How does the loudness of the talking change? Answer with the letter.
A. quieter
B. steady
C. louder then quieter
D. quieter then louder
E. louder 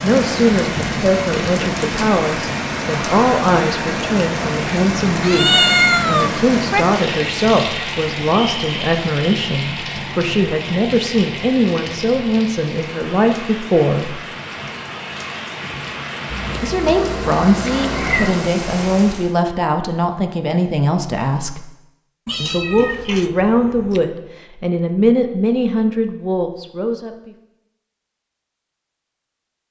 B.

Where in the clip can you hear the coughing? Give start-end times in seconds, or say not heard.
not heard.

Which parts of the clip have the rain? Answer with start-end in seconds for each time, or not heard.
0.0-19.4.